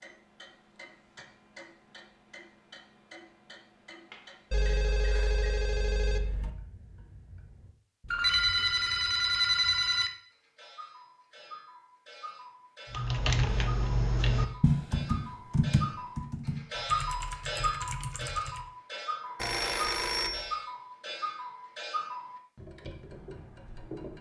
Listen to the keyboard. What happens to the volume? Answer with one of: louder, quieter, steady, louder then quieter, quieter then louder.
quieter.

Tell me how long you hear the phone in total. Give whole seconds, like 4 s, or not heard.
5 s.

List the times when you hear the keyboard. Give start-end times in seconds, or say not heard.
12.9-18.6.